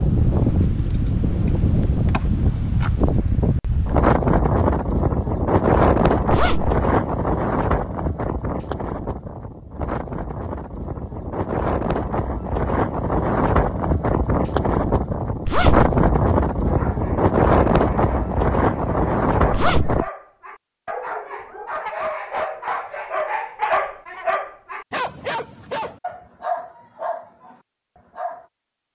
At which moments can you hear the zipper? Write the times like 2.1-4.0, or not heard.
6.3-6.8, 15.4-15.9, 19.5-20.1.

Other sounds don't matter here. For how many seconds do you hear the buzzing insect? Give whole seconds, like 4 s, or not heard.
not heard.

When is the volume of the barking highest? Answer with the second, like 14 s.
24 s.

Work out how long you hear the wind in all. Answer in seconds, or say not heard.
20 s.